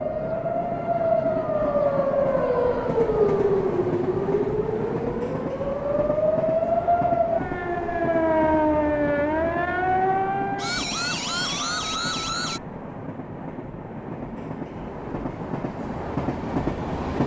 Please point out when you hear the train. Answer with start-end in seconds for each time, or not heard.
0.0-17.2.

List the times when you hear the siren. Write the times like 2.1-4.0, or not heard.
0.0-12.6.